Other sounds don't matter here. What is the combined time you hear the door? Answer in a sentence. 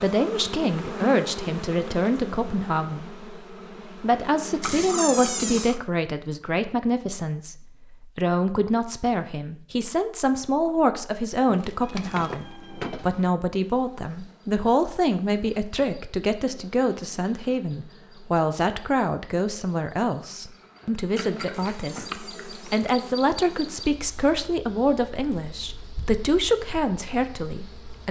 You can hear the door for 4 seconds altogether.